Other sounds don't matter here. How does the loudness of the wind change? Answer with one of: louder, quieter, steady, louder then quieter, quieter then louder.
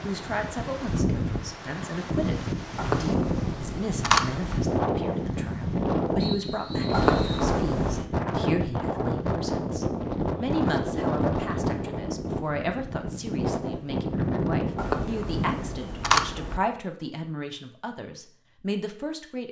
steady.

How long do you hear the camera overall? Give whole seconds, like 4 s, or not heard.
5 s.